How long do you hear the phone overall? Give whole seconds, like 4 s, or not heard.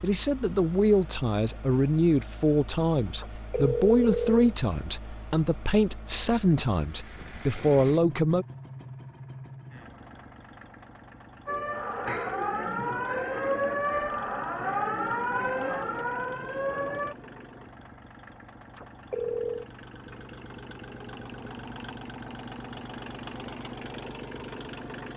2 s.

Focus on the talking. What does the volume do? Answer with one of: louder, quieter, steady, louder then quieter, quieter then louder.
steady.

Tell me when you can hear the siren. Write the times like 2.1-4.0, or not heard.
11.4-17.1.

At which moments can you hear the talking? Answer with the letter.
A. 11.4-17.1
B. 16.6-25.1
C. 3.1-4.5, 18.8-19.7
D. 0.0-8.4
D.